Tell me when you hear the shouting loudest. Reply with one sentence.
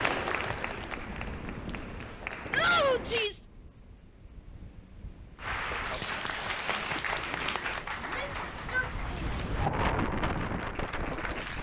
The volume of the shouting peaks at 3 seconds.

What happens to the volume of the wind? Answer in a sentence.
The volume of the wind goes down, then up.